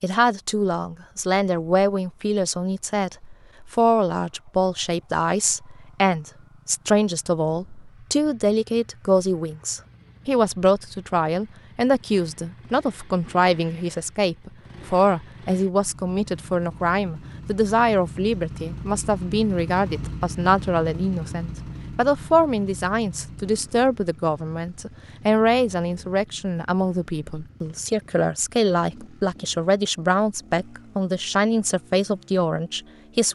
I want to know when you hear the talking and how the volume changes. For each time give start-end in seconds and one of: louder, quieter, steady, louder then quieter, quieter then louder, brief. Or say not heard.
0.0-33.2 steady.